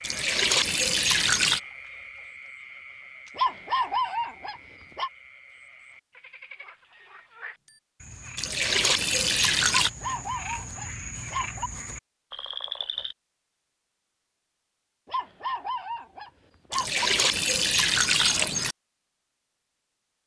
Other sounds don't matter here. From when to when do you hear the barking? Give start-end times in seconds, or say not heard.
3.4-5.1, 9.8-11.7, 15.1-17.1.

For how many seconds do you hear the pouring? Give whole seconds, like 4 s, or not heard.
5 s.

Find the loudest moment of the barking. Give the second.
4 s.